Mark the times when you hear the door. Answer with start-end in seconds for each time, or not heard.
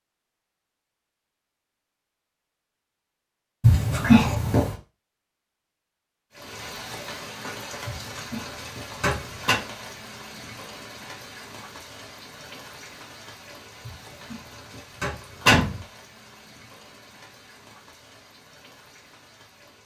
3.6-4.8, 7.8-9.6, 13.8-14.3, 15.0-15.8.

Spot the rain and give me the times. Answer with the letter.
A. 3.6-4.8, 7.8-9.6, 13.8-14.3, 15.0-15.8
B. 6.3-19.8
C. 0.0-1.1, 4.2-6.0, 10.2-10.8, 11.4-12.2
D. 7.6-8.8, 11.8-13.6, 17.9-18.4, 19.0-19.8
B.